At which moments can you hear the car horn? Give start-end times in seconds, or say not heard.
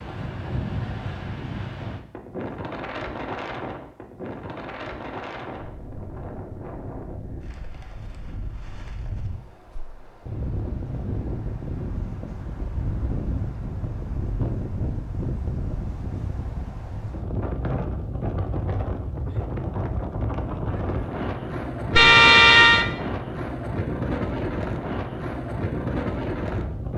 21.9-22.9.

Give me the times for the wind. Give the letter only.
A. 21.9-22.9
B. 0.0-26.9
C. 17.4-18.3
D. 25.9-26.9
B.